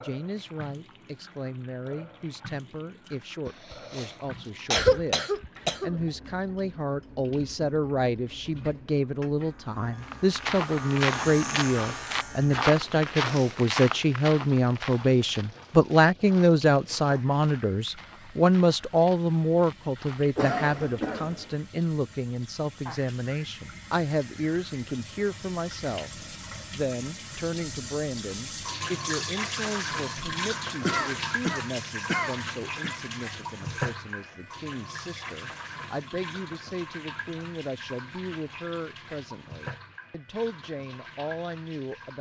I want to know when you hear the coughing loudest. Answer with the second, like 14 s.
5 s.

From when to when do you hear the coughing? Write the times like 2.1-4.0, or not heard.
3.5-4.1, 4.7-6.0, 20.4-21.6, 30.8-33.0.